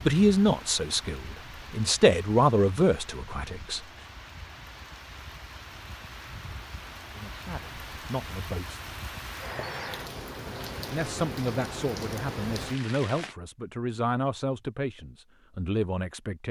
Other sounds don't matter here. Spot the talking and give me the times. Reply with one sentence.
The talking can be heard from 0.0 to 3.8 s, from 7.0 to 8.8 s and from 10.8 to 16.4 s.